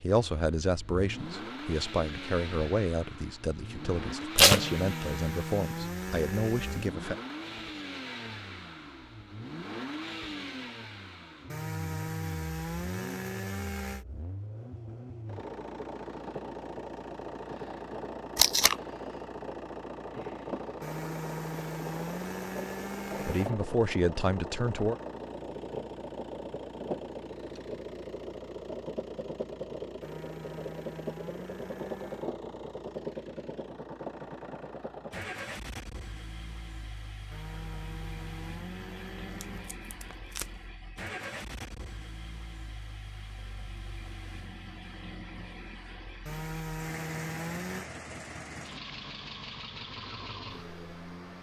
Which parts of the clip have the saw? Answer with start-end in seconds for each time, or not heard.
4.5-7.0, 11.5-14.1, 20.8-23.5, 30.0-32.4, 37.3-39.8, 46.2-47.9.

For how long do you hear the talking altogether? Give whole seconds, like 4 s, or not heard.
9 s.